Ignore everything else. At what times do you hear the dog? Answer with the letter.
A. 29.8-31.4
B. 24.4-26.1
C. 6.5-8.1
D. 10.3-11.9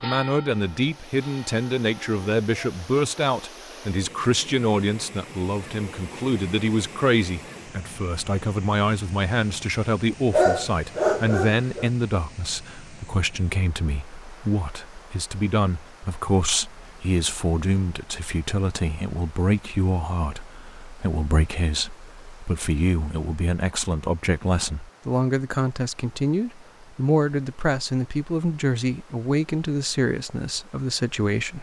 D.